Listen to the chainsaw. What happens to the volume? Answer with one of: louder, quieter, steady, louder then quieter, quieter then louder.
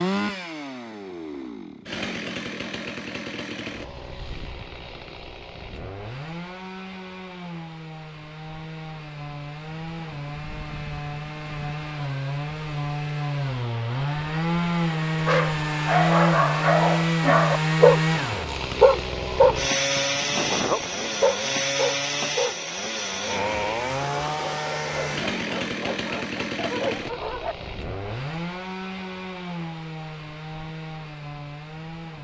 louder then quieter.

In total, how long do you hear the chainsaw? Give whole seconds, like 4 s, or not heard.
32 s.